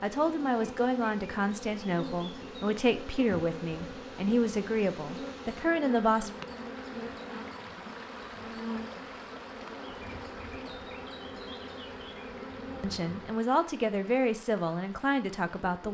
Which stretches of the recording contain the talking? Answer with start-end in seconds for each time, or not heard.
0.0-6.3, 12.8-15.8.